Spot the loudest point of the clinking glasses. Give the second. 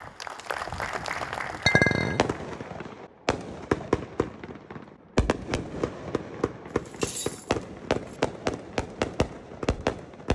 2 s.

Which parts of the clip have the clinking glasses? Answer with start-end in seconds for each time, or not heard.
1.6-2.2, 6.7-8.2.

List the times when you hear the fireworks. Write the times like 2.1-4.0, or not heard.
1.7-10.3.